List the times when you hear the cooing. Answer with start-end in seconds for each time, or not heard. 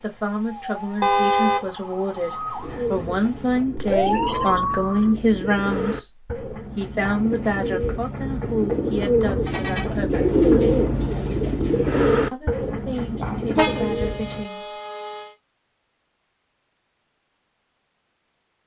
2.6-14.4.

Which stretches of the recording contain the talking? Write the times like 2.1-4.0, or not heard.
0.0-6.1, 6.8-10.4, 12.3-14.7.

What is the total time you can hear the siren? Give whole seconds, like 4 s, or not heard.
5 s.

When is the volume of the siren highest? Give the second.
4 s.